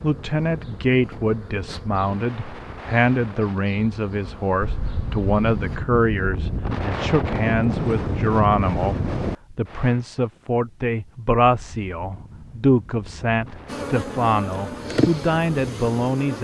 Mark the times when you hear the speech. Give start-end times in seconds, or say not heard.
0.0-16.3.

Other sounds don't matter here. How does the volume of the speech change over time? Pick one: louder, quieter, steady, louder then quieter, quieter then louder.
steady.